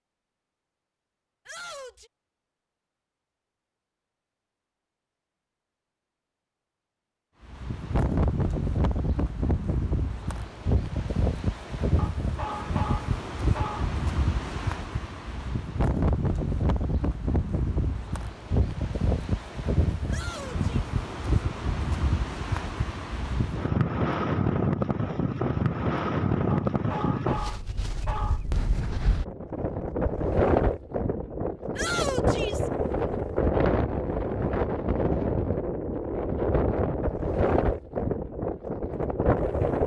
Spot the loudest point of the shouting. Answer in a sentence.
The volume of the shouting peaks at 32 seconds.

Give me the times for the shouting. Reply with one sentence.
The shouting can be heard from 1.4 to 2.1 s, from 20.1 to 20.9 s and from 31.8 to 32.7 s.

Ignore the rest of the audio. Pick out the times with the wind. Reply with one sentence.
You can hear the wind from 7.4 to 39.8 s.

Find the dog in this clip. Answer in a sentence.
You can hear the dog from 11.9 to 13.9 s and from 26.5 to 28.4 s.